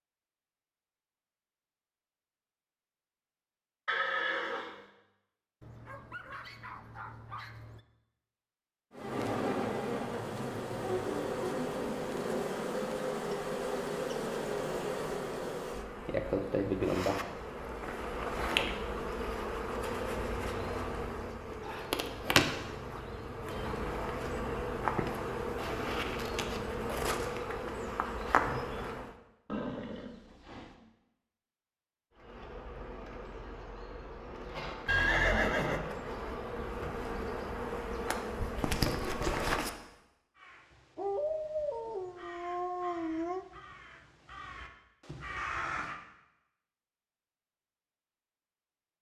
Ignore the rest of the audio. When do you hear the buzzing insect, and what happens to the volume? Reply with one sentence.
The buzzing insect can be heard from 8.9 to 29.1 s, at a steady volume; and from 32.1 to 39.8 s, getting louder.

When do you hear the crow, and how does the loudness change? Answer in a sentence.
The crow can be heard from 40.4 to 46.0 s, getting louder.